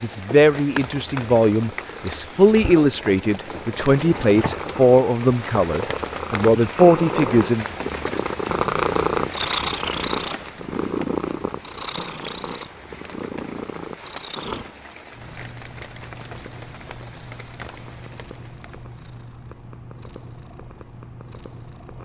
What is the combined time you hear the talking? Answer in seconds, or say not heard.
8 s.